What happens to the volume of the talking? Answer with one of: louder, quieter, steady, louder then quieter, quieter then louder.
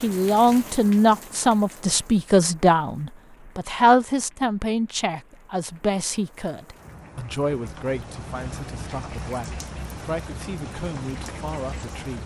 quieter.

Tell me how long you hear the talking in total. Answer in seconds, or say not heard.
12 s.